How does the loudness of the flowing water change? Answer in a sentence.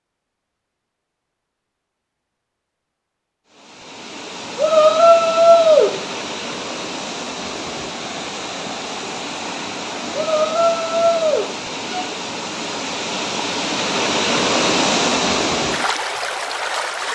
The volume of the flowing water goes up.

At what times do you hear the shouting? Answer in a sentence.
The shouting can be heard from 4.5 to 6.0 s and from 10.1 to 12.1 s.